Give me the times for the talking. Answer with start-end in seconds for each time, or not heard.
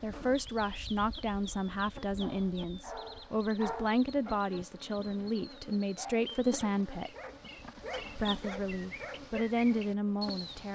0.0-7.1, 8.2-10.7.